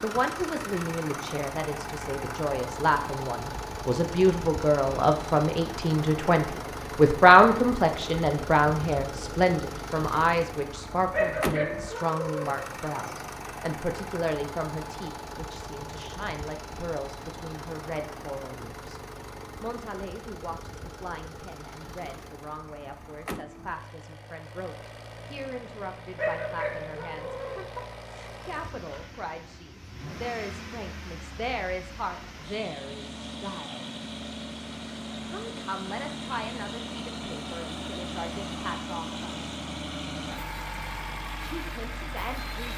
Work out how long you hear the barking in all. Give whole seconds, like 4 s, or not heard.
3 s.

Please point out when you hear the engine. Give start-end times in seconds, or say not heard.
0.0-42.7.